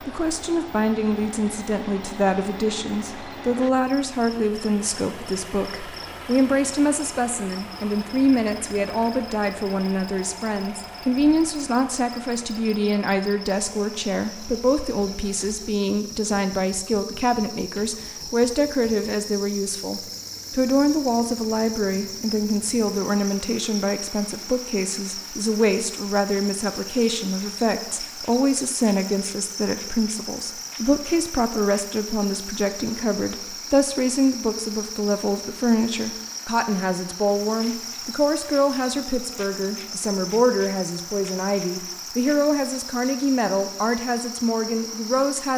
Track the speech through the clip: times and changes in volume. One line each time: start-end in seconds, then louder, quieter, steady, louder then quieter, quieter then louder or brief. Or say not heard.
0.1-45.5 steady.